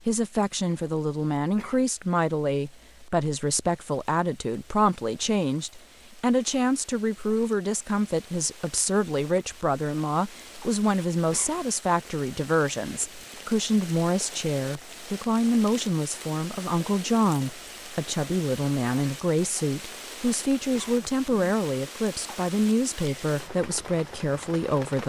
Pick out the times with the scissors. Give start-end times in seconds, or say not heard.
not heard.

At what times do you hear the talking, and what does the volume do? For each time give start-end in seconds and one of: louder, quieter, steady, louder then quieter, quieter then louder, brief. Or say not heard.
0.1-25.0 steady.